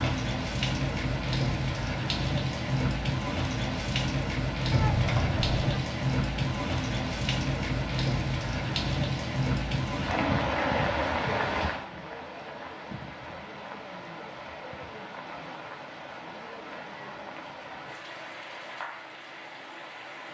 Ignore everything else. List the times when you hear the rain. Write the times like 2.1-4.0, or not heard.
0.0-20.3.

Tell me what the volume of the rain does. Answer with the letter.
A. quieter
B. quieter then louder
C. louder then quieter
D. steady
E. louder
A.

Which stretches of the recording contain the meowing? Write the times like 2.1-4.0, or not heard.
4.7-5.8.